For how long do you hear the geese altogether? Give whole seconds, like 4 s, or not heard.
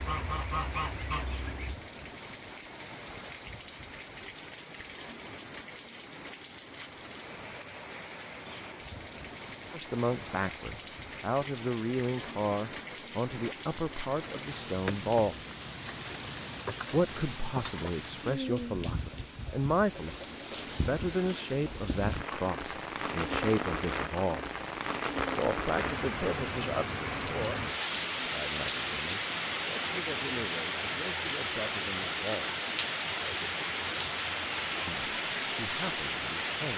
2 s.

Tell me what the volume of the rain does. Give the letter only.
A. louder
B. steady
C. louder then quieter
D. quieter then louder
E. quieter
A.